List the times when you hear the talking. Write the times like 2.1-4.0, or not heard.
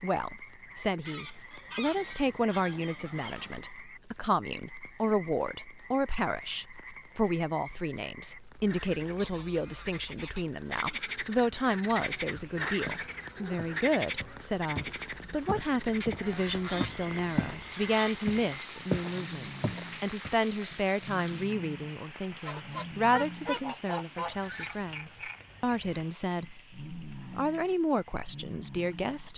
0.0-29.3.